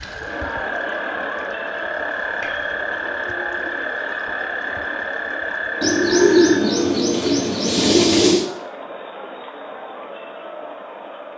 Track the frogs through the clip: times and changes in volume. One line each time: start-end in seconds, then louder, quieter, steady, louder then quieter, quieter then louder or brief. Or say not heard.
0.0-6.6 steady.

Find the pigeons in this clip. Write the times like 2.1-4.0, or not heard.
5.8-8.4.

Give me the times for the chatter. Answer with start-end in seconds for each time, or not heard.
0.0-11.3.